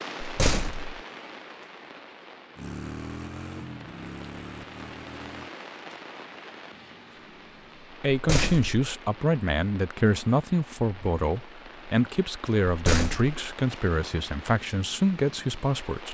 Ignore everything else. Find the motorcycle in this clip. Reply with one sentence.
You can hear the motorcycle from 2.5 to 5.5 s.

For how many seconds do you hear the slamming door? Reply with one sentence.
You can hear the slamming door for 2 seconds altogether.